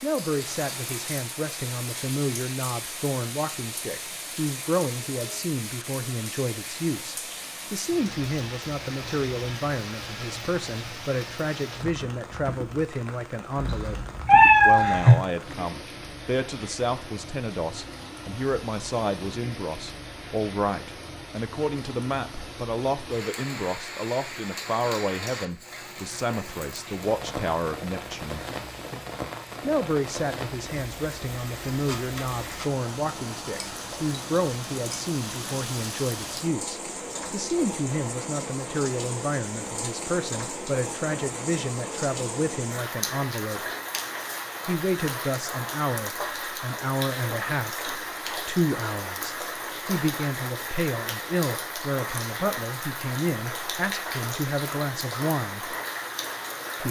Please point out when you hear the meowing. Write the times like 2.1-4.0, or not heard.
13.6-15.2.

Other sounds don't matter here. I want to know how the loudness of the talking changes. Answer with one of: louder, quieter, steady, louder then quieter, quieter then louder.
steady.